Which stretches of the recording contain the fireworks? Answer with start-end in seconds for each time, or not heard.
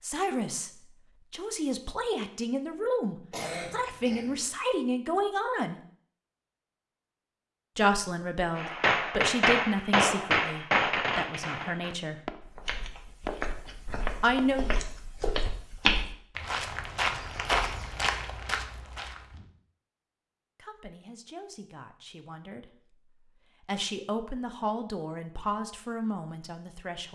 8.6-15.4.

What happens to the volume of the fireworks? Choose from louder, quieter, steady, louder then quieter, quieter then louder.
quieter.